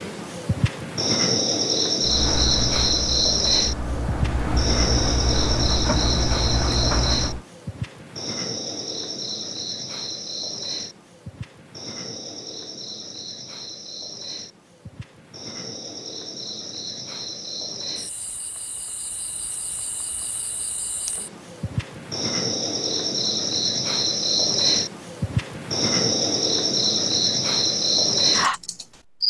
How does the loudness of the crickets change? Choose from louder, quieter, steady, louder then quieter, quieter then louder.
quieter then louder.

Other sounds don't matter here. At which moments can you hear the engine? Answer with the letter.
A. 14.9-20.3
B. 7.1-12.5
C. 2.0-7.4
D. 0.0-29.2
C.